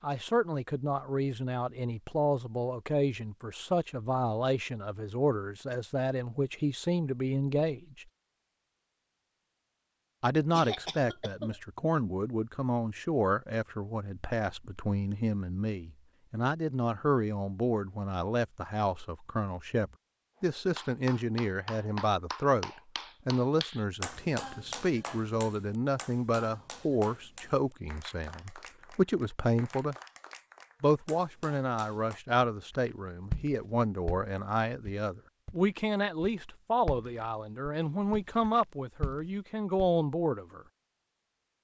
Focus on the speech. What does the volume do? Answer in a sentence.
The volume of the speech stays about the same.